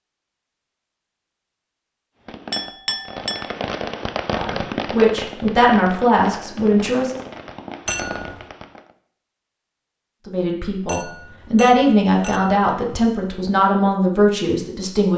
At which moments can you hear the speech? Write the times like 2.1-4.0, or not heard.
4.3-7.2, 10.2-15.1.